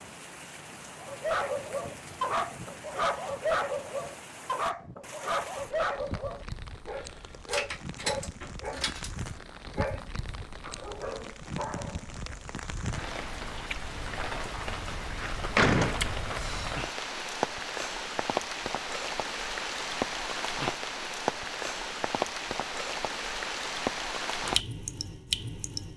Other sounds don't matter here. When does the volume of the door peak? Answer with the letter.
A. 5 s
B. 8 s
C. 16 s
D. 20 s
C.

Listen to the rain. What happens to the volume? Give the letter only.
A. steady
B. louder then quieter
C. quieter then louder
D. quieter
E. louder
E.